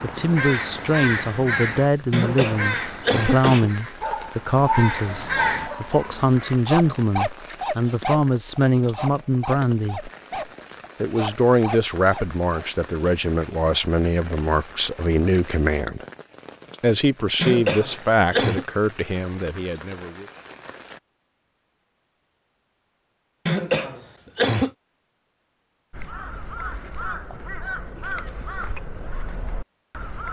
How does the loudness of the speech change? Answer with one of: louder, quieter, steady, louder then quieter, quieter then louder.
steady.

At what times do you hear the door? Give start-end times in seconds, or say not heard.
not heard.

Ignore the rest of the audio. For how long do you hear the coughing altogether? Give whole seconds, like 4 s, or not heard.
4 s.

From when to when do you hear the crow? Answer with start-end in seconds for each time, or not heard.
0.0-5.7, 25.9-30.2.